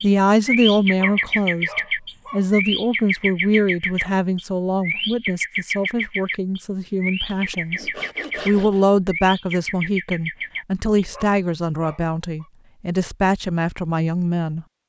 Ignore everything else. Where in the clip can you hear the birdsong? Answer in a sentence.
The birdsong can be heard from 0.0 to 11.1 s.